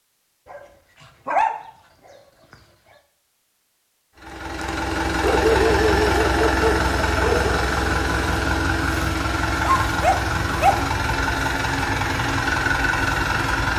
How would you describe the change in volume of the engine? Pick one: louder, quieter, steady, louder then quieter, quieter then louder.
steady.